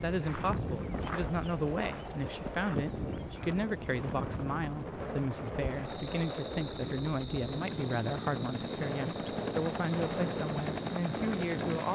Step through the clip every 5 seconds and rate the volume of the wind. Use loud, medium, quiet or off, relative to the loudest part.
medium, loud, loud.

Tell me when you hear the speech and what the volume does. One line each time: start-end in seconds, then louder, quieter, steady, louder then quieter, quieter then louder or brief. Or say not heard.
0.0-11.9 steady.